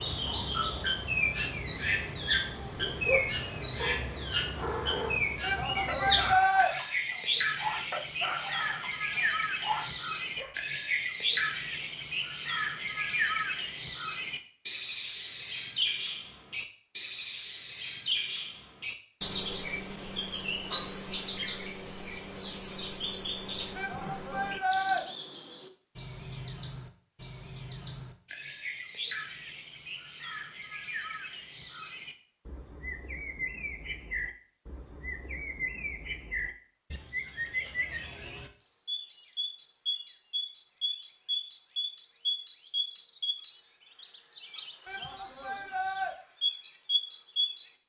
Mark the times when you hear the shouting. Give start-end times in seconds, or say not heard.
5.4-6.7, 23.8-25.1, 44.9-46.1.